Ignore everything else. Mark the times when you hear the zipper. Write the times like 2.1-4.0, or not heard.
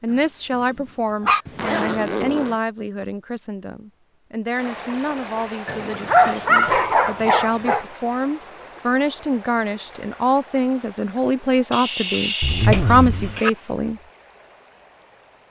1.4-2.6, 6.6-7.0, 12.4-13.4.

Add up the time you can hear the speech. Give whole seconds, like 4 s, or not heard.
14 s.